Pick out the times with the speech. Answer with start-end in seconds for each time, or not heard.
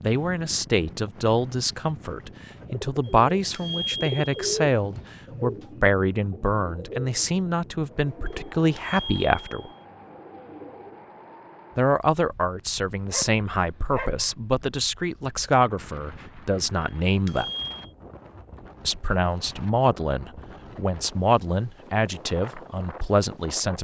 0.0-9.7, 11.8-17.5, 18.9-23.7.